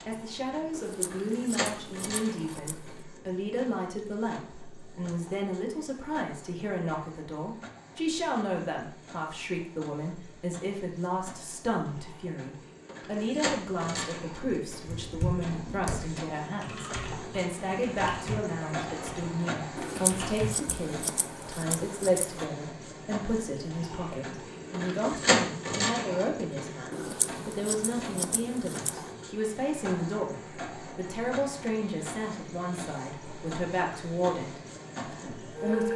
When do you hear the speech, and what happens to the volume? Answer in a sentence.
You can hear the speech from 0.1 to 35.9 s, at a steady volume.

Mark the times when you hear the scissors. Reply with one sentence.
The scissors can be heard from 0.7 to 2.9 s, from 19.8 to 22.4 s and from 26.9 to 29.1 s.